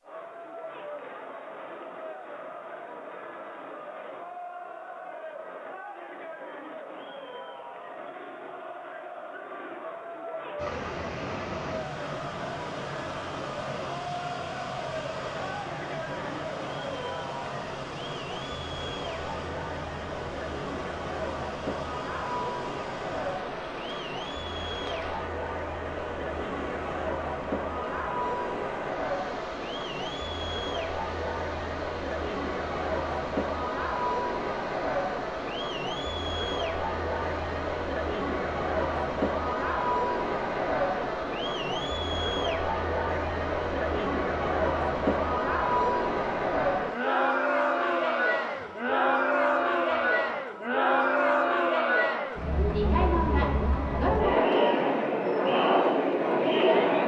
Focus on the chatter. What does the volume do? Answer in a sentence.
The loudness of the chatter goes up.